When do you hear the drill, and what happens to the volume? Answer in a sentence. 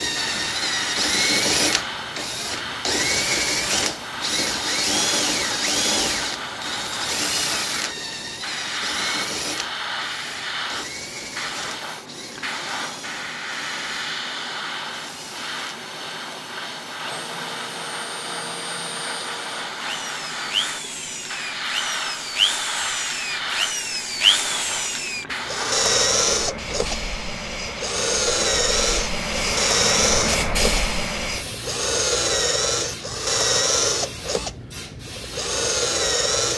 You can hear the drill from 0.0 to 36.5 s, getting quieter then louder.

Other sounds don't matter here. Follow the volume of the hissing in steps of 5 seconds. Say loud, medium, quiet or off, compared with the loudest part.
loud, loud, loud, loud, loud, loud, loud, medium.